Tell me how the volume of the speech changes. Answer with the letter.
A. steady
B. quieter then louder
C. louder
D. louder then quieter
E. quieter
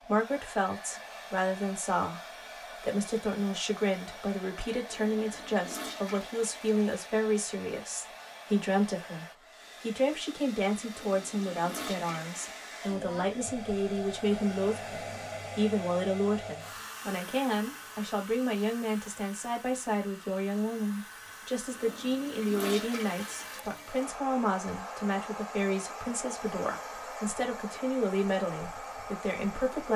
A.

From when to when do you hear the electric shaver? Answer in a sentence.
The electric shaver can't be heard in this clip.